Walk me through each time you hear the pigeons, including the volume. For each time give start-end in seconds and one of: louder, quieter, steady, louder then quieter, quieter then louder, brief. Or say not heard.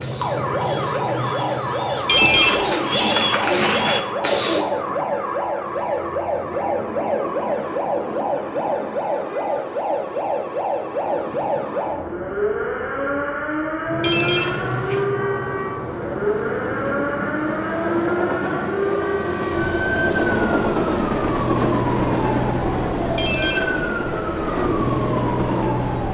0.0-4.7 louder.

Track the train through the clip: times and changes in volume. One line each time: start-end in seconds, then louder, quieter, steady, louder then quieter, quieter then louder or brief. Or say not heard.
0.0-26.1 louder.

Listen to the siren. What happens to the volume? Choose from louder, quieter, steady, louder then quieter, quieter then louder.
steady.